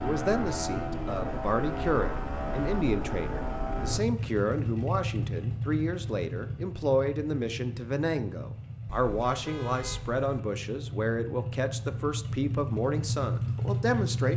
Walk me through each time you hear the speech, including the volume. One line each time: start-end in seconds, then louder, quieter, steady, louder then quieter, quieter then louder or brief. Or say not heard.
0.0-14.3 steady.